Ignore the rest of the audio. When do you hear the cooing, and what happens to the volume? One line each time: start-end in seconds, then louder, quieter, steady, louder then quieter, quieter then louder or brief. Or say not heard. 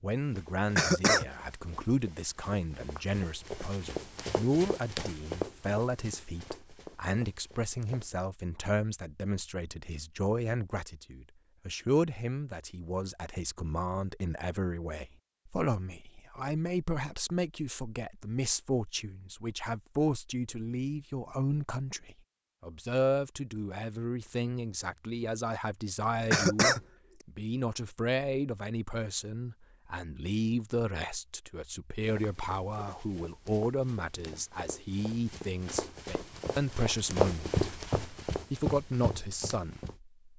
not heard.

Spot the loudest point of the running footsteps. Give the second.
37 s.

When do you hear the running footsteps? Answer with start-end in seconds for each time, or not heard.
0.2-8.2, 32.0-40.0.